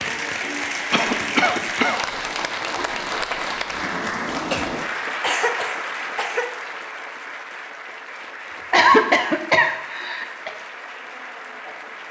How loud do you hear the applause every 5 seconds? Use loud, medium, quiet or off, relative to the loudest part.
loud, medium, medium.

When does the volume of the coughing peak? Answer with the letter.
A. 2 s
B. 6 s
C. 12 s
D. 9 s
D.